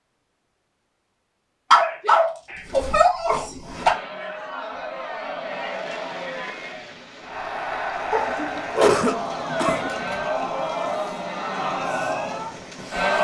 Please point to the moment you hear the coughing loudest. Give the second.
9 s.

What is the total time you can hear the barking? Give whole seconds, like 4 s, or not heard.
4 s.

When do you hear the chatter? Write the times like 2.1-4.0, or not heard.
3.6-13.2.